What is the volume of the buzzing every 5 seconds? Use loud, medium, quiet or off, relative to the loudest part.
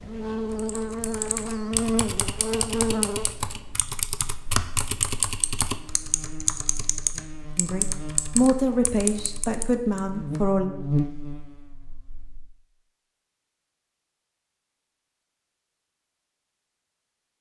loud, quiet, loud, off.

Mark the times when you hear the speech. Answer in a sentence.
You can hear the speech from 7.5 to 10.7 s.